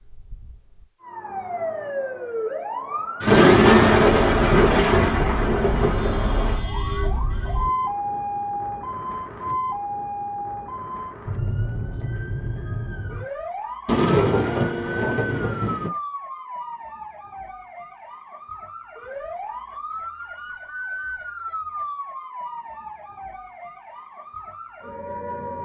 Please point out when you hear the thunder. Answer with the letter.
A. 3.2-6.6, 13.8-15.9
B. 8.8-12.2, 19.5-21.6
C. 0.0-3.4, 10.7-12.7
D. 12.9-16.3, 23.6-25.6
A.